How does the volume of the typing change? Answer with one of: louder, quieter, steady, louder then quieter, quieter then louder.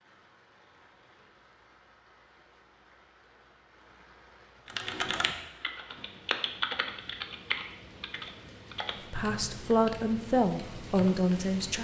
quieter.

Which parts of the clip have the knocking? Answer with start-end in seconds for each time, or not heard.
not heard.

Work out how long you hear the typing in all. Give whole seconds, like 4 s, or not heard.
7 s.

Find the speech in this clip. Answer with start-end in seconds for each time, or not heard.
9.1-11.7.